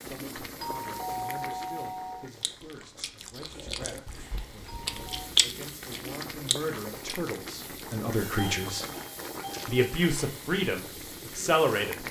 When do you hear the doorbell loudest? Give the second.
1 s.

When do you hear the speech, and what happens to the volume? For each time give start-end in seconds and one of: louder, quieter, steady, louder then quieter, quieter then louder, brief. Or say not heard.
0.0-8.8 louder
9.7-12.0 brief.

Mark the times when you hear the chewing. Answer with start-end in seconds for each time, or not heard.
2.4-9.8.